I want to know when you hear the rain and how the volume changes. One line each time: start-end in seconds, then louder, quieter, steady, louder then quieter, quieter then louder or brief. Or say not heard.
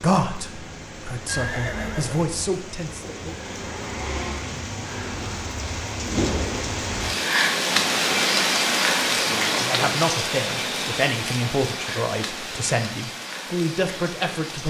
0.0-14.6 louder then quieter.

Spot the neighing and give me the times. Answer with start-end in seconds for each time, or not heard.
1.2-2.5.